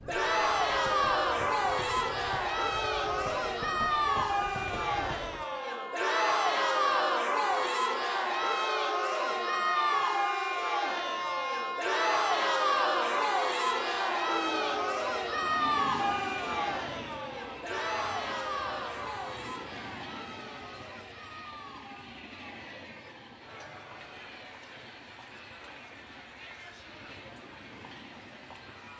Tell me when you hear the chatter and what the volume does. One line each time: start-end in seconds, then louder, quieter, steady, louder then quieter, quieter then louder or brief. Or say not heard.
0.0-28.9 quieter.